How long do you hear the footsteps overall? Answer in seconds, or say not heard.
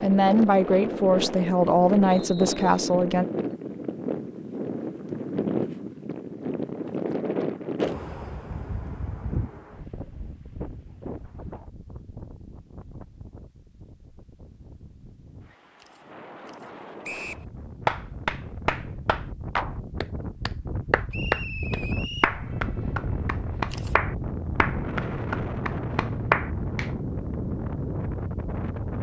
not heard.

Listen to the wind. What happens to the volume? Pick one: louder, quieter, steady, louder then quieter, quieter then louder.
quieter then louder.